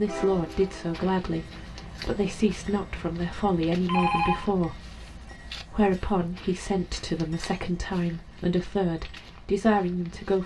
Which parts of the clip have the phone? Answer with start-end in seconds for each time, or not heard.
3.9-4.5.